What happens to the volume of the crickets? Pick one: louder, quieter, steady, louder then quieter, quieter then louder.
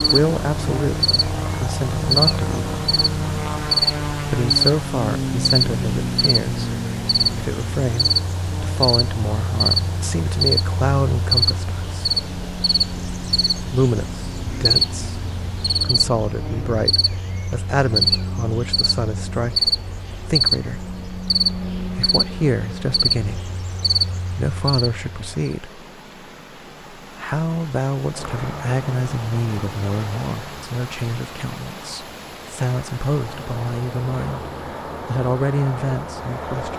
steady.